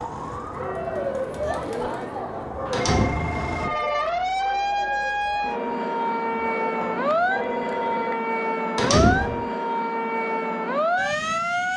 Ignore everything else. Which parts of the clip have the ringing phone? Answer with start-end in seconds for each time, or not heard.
2.6-4.1, 6.8-8.2.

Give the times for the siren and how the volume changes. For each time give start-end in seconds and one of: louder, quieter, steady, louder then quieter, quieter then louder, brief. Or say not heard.
0.0-11.7 louder.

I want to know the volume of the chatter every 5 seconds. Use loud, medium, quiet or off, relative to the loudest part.
loud, medium, off.